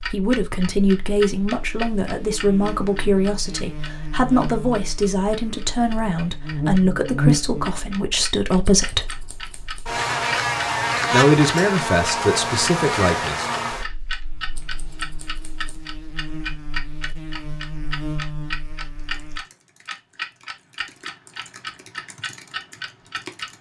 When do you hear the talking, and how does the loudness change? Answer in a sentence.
The talking can be heard from 0.0 to 9.1 s, at a steady volume; and briefly from 11.1 to 13.4 s.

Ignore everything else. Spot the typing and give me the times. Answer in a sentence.
The typing can be heard from 18.9 to 23.5 s.